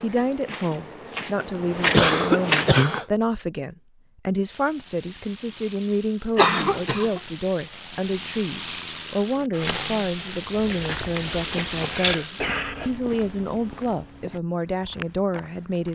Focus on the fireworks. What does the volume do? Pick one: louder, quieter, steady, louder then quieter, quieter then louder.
louder.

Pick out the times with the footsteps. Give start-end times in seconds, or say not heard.
0.0-2.9, 10.4-15.9.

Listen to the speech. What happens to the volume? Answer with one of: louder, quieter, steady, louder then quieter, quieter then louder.
steady.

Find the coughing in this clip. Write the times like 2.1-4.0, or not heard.
1.9-3.0, 6.3-7.2, 11.4-12.9.